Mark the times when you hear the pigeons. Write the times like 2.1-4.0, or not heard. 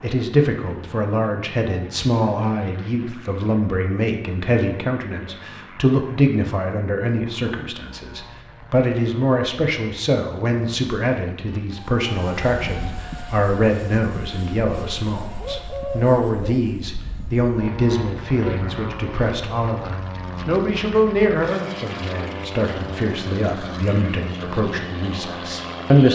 15.3-17.1.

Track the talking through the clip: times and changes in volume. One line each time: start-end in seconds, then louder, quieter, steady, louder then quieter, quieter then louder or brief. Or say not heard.
0.0-26.1 steady.